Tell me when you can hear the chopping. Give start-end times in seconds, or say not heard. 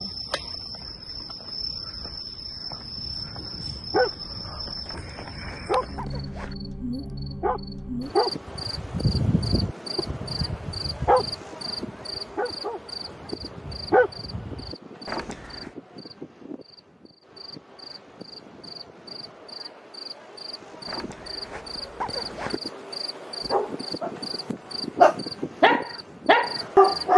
not heard.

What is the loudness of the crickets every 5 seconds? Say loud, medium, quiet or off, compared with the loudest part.
loud, loud, loud, medium, loud, loud.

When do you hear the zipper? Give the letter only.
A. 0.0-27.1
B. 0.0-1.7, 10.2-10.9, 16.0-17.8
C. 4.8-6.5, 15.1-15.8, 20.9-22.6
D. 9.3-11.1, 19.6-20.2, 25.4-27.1
C.